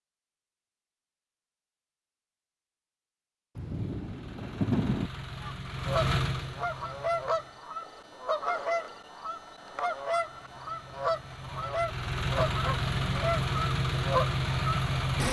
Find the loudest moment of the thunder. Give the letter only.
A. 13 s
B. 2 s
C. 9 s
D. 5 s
D.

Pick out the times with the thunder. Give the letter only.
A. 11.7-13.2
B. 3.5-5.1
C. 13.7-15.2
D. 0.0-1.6
B.